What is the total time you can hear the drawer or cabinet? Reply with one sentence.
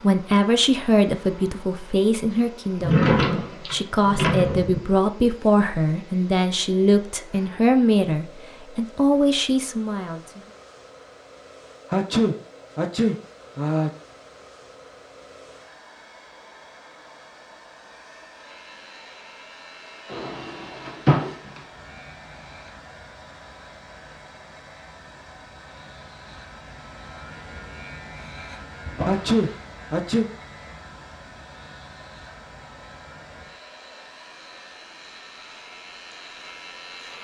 You can hear the drawer or cabinet for 4 seconds altogether.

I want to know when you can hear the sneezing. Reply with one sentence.
The sneezing can be heard from 11.9 to 13.9 s and from 29.1 to 30.2 s.